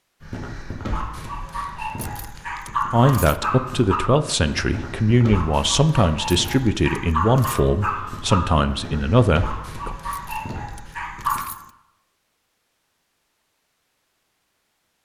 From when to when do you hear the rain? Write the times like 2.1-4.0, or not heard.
not heard.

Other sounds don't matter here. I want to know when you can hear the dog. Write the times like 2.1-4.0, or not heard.
0.2-11.4.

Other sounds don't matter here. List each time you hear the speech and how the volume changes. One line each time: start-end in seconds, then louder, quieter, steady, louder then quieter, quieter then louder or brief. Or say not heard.
2.9-9.9 steady.